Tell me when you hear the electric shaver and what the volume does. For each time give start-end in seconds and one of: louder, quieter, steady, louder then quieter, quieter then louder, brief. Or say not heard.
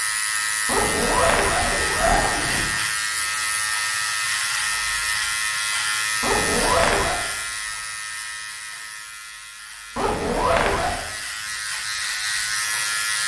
0.0-13.2 quieter then louder.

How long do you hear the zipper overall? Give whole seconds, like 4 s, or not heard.
4 s.